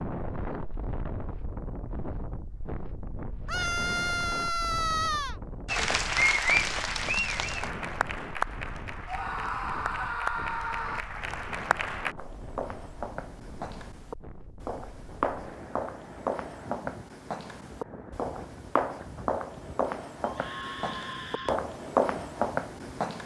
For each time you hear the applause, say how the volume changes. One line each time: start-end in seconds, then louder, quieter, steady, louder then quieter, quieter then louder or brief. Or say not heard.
5.7-12.2 quieter.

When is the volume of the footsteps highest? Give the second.
22 s.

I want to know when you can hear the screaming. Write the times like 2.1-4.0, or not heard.
3.5-5.4, 9.1-11.0, 20.2-21.6.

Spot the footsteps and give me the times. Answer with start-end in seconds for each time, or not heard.
12.2-23.2.